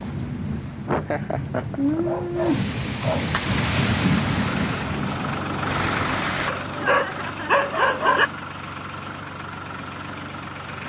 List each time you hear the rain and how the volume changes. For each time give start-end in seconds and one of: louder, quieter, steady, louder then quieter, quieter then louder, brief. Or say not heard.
0.0-6.5 louder then quieter.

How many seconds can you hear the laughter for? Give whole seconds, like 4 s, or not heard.
2 s.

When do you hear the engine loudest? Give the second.
6 s.